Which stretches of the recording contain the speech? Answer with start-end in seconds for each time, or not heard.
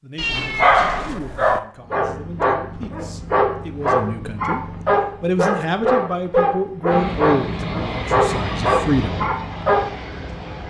0.0-4.6, 5.2-9.2.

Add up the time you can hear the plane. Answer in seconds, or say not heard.
4 s.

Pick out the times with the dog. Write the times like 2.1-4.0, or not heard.
1.9-9.8.